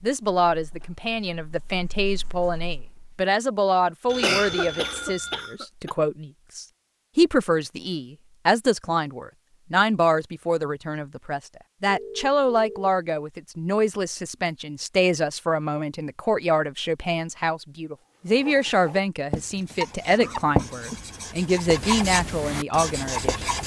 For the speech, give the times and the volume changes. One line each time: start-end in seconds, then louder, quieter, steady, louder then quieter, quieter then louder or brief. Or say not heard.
0.0-23.4 steady.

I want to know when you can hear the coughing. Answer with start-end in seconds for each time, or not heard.
4.2-5.9, 19.6-21.1.